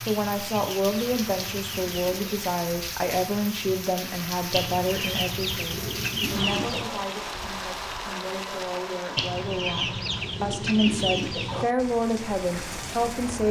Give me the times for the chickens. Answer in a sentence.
The chickens can be heard from 0.1 to 2.5 s, from 4.5 to 7.0 s and from 9.2 to 11.7 s.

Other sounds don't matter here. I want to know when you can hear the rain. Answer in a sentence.
You can hear the rain from 0.0 to 13.4 s.